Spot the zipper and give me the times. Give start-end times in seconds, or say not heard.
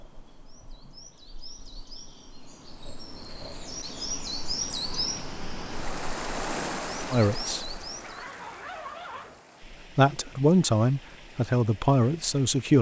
8.0-9.4.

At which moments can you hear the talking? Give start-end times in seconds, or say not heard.
7.1-7.7, 9.9-12.7.